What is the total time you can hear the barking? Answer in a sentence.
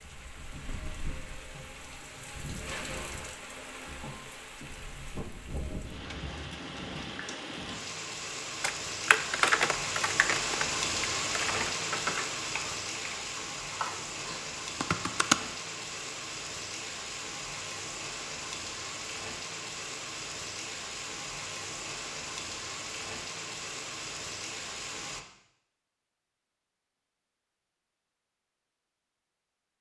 The barking can't be heard in this clip.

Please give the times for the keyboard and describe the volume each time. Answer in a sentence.
The keyboard can be heard from 8.6 to 15.3 s, getting quieter then louder.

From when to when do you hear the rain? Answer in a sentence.
You can hear the rain from 0.0 to 25.2 s.